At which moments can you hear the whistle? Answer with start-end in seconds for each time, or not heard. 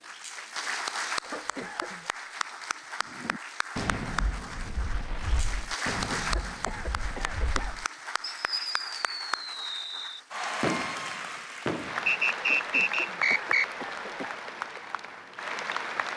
12.1-13.7.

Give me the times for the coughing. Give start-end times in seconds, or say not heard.
1.2-2.1, 5.8-7.8, 12.4-14.3.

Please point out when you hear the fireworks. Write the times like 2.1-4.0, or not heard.
3.2-12.2.